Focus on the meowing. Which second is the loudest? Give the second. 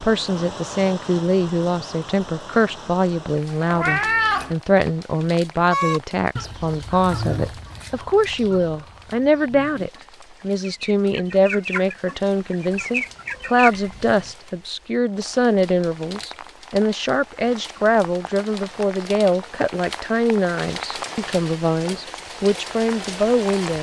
4 s.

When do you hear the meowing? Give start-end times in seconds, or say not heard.
3.7-4.5, 12.8-14.3.